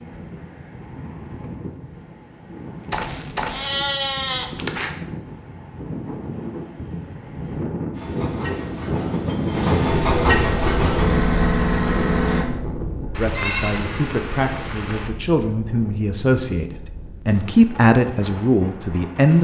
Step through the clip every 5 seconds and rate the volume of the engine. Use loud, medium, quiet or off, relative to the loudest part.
off, medium, loud, off.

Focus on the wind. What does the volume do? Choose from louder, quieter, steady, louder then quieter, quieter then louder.
louder then quieter.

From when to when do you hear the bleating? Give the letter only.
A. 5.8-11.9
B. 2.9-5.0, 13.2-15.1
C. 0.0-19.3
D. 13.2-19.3
B.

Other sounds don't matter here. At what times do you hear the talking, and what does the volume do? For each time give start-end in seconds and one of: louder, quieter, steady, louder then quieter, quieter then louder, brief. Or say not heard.
13.2-19.3 louder.